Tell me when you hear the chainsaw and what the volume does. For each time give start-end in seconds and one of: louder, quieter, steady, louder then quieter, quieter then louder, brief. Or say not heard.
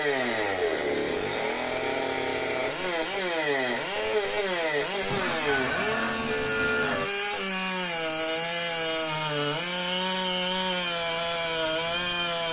0.0-12.4 steady.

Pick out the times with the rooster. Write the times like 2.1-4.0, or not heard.
5.0-7.0.